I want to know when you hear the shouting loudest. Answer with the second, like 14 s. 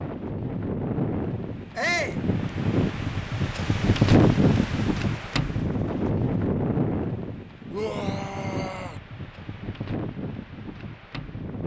2 s.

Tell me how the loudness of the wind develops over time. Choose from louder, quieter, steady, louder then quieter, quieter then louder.
louder then quieter.